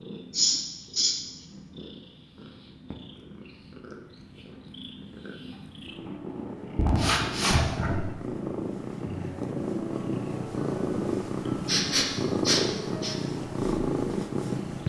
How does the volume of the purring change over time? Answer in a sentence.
The loudness of the purring goes up.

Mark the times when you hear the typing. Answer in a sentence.
You can't hear the typing here.